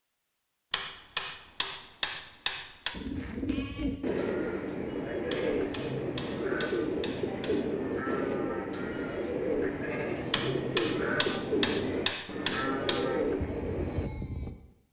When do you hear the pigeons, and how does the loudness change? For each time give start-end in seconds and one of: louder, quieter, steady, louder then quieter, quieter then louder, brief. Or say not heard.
2.9-14.1 steady.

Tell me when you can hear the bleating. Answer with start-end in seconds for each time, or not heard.
2.9-14.6.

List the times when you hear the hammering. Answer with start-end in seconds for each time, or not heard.
0.7-3.0, 5.3-7.7, 10.3-13.1.